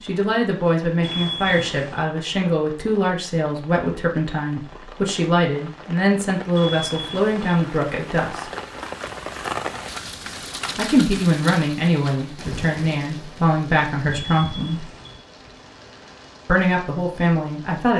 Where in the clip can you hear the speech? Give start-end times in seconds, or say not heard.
0.0-8.4, 10.8-14.9, 16.4-17.9.